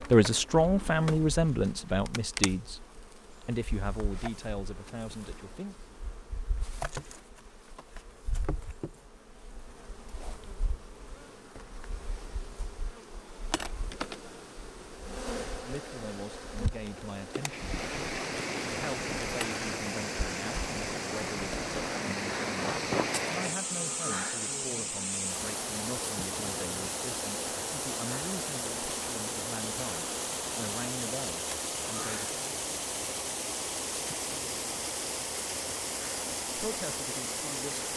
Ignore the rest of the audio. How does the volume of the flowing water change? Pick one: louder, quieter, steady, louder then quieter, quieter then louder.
steady.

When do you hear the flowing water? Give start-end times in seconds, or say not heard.
17.4-37.9.